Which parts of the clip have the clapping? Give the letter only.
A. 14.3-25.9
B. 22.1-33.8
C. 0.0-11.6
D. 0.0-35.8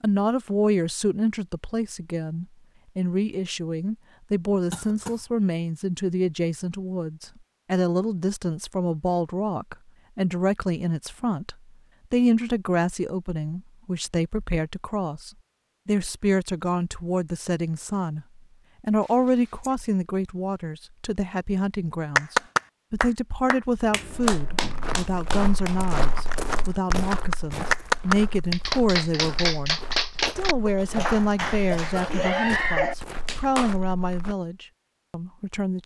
B.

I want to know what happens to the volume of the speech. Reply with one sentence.
The loudness of the speech stays about the same.